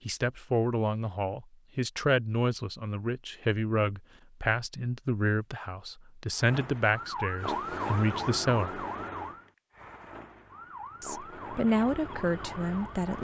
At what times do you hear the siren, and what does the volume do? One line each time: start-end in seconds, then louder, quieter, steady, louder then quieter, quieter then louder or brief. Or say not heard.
6.3-13.1 quieter.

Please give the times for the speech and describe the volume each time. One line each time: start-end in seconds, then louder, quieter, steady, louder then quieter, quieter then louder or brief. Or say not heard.
0.1-8.8 steady
11.0-13.1 brief.